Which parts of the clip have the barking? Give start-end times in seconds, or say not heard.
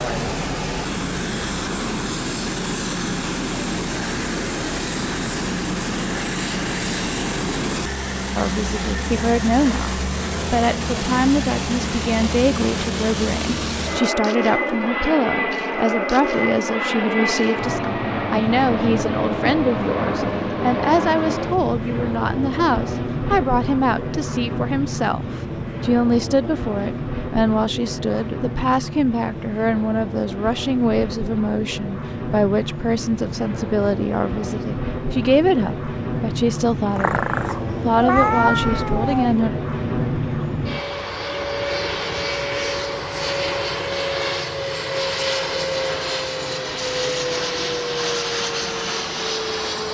not heard.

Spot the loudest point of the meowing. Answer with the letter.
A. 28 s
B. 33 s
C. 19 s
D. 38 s
D.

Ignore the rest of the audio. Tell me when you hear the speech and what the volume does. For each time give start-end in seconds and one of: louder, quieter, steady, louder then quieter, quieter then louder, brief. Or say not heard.
8.3-39.5 steady.